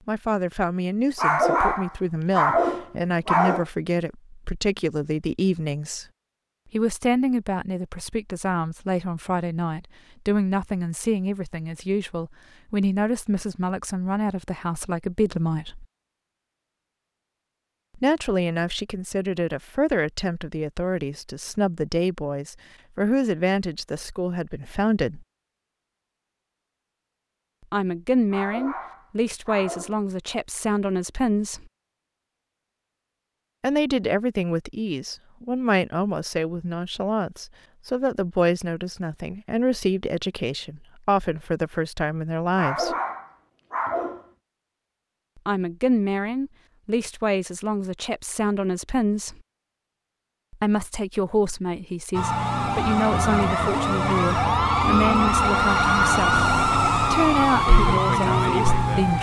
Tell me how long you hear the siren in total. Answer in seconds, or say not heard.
7 s.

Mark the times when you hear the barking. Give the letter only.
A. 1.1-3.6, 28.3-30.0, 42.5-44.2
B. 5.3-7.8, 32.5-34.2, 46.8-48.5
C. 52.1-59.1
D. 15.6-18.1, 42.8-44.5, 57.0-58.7
A.